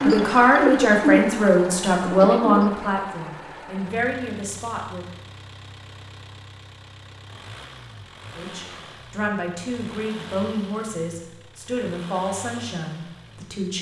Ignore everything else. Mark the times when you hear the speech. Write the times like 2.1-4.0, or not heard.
0.0-5.0, 8.3-13.7.